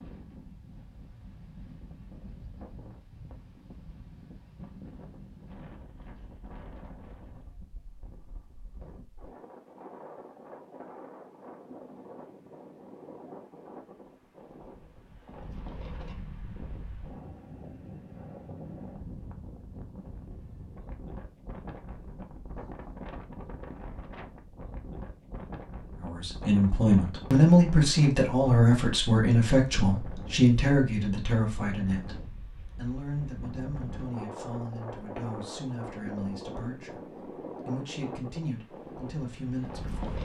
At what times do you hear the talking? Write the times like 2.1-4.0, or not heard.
26.0-40.1.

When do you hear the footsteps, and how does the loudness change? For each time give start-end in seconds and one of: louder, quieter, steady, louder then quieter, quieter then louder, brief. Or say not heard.
not heard.